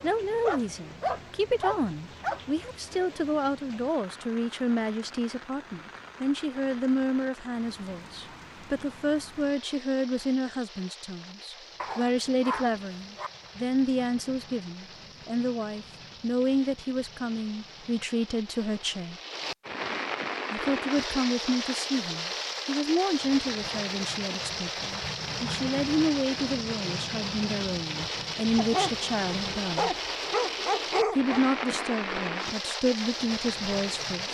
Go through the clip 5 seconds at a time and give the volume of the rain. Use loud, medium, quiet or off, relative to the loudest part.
quiet, quiet, quiet, medium, loud, loud, loud.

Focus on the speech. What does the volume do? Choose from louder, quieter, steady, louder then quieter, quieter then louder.
steady.